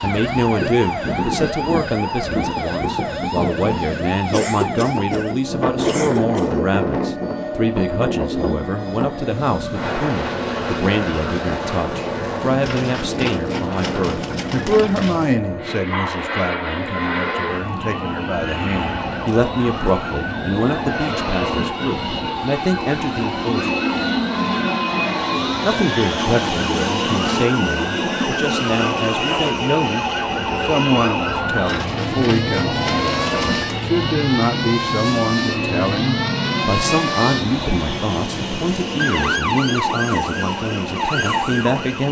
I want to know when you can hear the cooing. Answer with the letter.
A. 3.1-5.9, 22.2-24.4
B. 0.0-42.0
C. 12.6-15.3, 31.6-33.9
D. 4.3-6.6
C.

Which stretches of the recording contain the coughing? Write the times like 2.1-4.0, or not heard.
4.3-6.6.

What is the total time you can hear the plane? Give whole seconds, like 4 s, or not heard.
42 s.